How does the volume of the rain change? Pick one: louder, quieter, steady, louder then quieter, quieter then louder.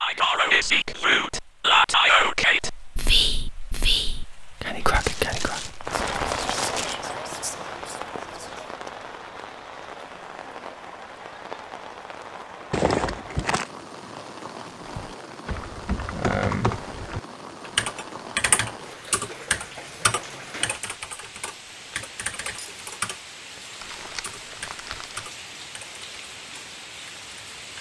quieter.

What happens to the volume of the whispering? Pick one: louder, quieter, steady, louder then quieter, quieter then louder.
quieter.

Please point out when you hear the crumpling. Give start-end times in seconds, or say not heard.
4.9-7.0, 12.7-13.7, 23.8-25.2.